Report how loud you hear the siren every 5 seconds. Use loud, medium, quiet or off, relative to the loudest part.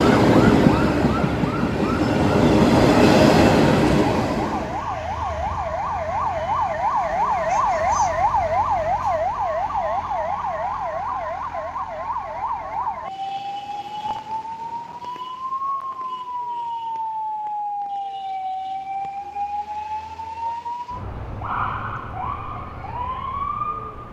medium, loud, medium, medium, medium.